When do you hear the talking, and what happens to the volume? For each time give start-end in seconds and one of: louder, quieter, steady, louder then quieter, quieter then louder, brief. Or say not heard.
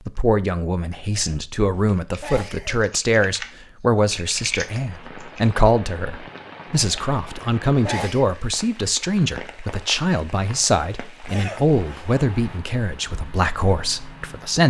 0.1-14.6 steady.